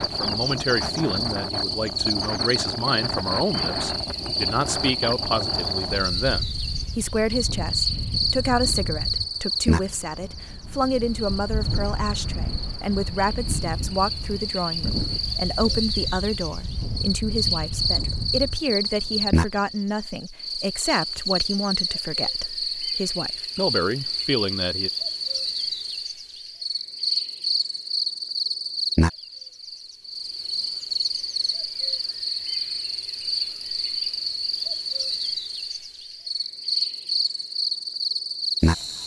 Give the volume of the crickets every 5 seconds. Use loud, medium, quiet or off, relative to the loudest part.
loud, loud, medium, loud, loud, loud, loud, loud.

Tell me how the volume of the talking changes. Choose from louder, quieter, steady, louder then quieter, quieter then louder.
steady.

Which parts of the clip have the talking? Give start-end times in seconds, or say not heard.
0.0-24.9.